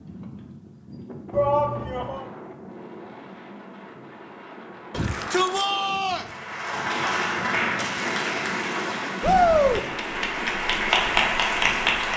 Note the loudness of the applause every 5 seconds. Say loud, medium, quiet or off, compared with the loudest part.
off, medium, loud.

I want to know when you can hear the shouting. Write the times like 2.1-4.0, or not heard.
1.3-2.2, 4.9-6.2, 9.2-9.8.